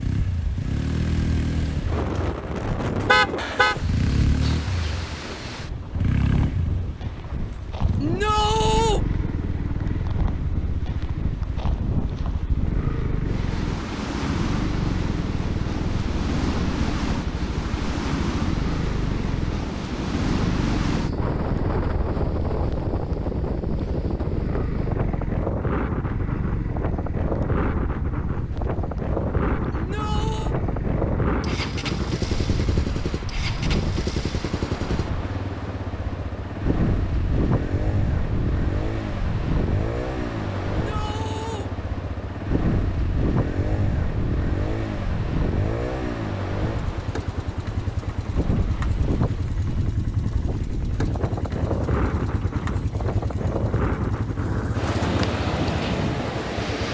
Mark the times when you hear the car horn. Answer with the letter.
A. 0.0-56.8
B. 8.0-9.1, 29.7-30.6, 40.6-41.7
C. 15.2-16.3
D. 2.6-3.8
D.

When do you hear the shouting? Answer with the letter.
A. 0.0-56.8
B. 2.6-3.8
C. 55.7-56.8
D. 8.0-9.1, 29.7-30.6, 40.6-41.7
D.